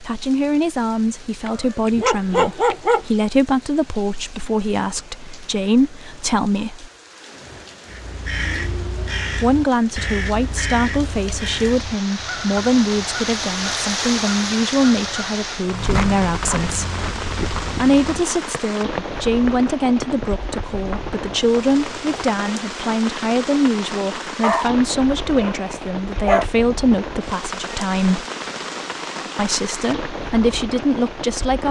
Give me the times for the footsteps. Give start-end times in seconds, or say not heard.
15.7-22.4.